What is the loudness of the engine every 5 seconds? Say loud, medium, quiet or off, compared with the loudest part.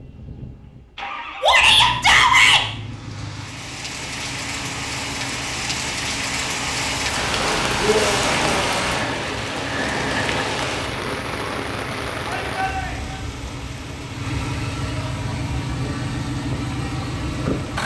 medium, medium, medium, loud.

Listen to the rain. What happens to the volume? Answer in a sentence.
The volume of the rain goes up, then down.